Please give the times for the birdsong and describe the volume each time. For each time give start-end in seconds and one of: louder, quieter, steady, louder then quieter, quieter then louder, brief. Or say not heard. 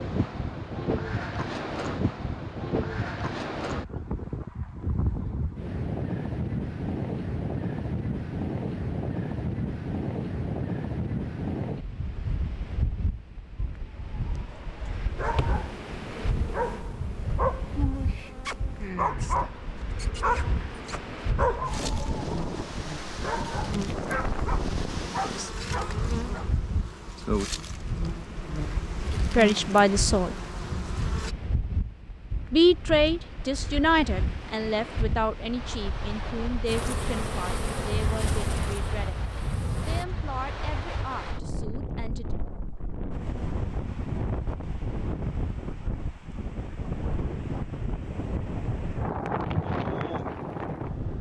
not heard.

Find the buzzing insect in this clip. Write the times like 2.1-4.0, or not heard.
15.2-31.4, 36.6-40.0.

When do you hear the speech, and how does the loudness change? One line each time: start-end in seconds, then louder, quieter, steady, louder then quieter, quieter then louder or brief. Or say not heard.
29.1-30.4 brief
32.5-39.2 quieter
39.8-42.4 brief.